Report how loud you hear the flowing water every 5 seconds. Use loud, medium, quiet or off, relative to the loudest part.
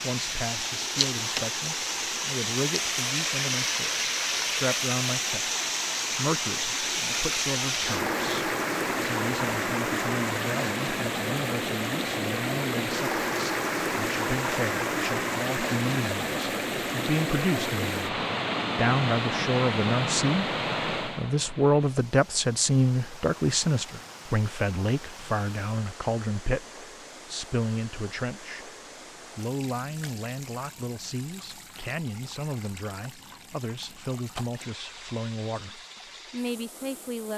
loud, loud, loud, loud, medium, quiet, quiet, quiet.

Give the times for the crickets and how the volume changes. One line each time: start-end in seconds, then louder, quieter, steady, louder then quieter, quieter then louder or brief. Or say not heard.
not heard.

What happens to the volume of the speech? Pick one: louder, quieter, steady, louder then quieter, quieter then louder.
louder then quieter.